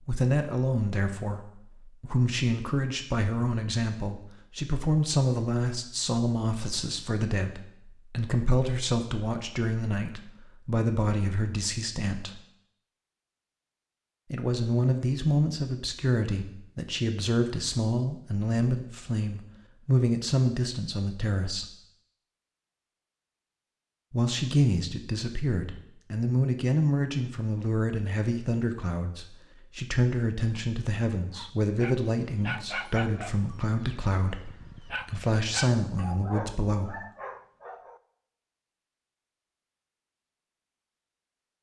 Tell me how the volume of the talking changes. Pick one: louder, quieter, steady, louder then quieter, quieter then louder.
steady.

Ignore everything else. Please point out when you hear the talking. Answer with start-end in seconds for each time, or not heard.
0.1-12.3, 14.3-21.7, 24.1-37.0.